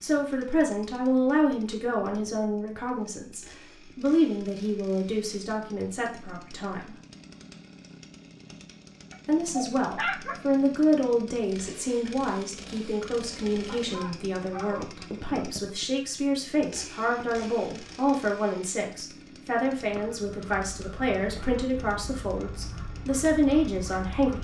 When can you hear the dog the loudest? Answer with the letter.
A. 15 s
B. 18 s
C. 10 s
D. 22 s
C.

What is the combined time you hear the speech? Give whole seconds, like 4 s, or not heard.
22 s.